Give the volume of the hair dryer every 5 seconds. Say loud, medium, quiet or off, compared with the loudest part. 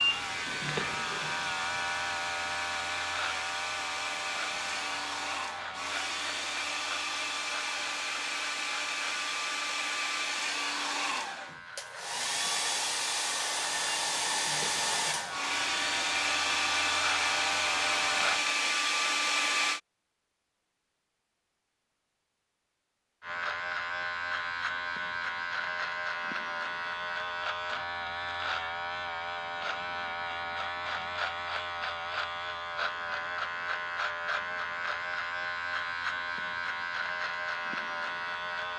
medium, medium, loud, loud, off, off, off, off.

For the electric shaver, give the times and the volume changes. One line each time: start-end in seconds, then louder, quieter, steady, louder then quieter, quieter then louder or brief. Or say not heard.
0.0-18.4 quieter then louder
23.2-38.7 steady.